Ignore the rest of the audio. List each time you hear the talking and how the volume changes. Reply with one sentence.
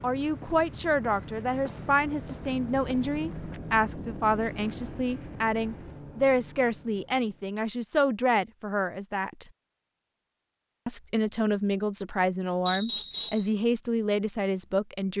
The talking can be heard from 0.0 to 9.4 s, at a steady volume; and from 10.8 to 15.1 s, at a steady volume.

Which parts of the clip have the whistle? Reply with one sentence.
The whistle can be heard from 12.7 to 13.5 s.